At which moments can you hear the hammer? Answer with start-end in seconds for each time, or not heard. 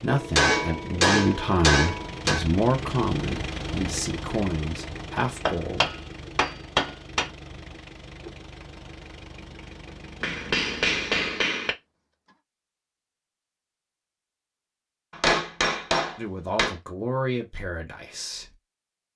0.1-2.5, 5.2-7.3, 10.2-11.8, 15.1-16.8.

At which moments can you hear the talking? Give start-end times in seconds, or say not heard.
0.0-5.9, 16.1-18.6.